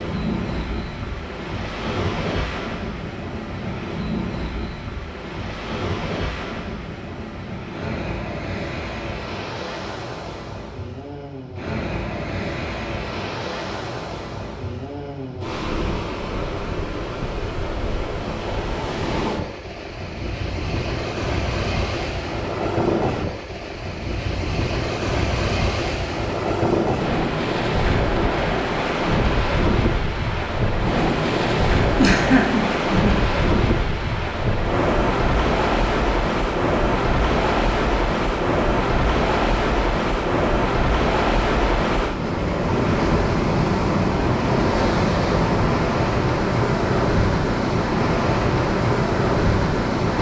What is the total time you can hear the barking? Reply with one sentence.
The barking can't be heard in this clip.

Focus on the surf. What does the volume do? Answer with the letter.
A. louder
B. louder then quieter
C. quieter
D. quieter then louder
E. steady
A.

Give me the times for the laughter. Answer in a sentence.
You can hear the laughter from 31.9 to 33.2 s.